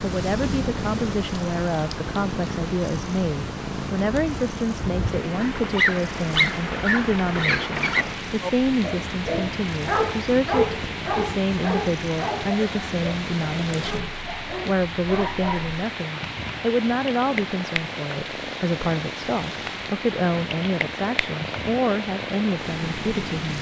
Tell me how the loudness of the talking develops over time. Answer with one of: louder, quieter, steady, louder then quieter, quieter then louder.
steady.